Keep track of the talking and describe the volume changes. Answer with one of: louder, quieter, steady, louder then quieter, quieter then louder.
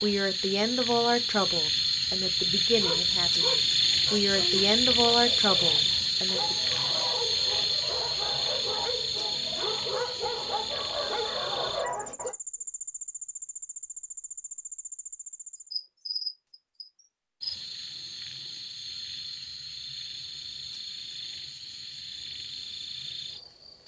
quieter then louder.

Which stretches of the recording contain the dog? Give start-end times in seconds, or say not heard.
2.6-12.3.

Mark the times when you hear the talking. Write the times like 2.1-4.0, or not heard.
0.0-6.5.